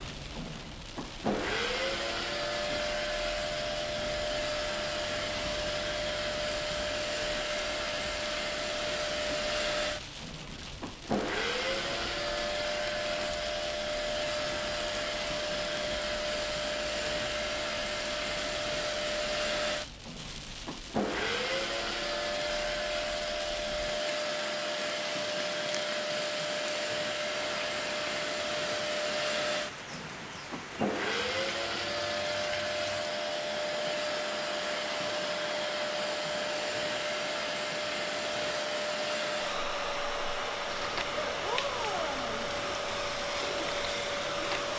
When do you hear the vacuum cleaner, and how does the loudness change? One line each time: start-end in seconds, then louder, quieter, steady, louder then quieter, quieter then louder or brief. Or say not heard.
0.0-44.7 steady.